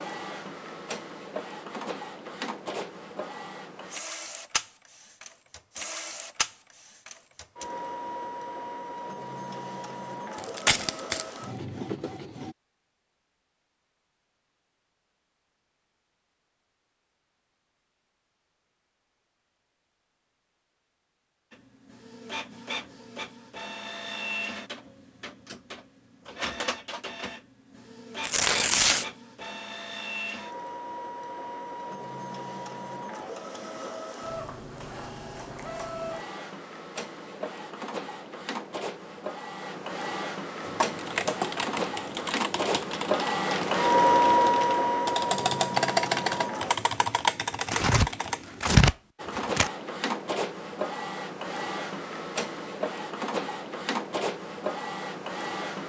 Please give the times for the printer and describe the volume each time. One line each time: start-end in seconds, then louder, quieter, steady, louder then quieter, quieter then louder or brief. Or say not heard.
0.0-12.6 steady
21.5-46.8 louder
49.1-55.8 steady.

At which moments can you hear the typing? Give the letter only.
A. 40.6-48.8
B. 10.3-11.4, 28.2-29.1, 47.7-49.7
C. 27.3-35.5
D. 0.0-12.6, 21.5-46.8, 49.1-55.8
A.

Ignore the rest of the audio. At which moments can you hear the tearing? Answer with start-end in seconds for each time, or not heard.
10.3-11.4, 28.2-29.1, 47.7-49.7.